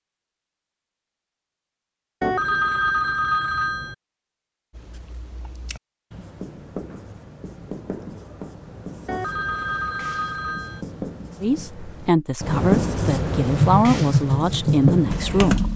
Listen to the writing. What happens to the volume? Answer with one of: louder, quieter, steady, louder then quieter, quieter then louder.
louder.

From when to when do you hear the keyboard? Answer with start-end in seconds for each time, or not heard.
13.6-15.7.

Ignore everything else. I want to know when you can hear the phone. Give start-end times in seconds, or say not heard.
2.2-4.0, 9.1-10.8.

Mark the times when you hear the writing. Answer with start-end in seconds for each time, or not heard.
4.7-15.6.